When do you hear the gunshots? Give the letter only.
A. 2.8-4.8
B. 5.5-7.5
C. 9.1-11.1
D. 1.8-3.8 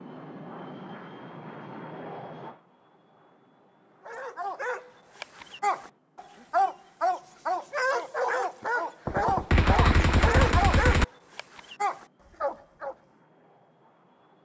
C.